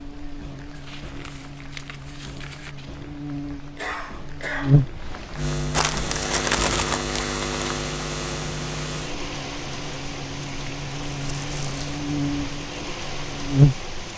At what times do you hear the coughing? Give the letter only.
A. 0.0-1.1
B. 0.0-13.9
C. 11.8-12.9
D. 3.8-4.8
D.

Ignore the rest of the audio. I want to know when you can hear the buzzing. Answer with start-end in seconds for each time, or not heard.
0.0-13.9.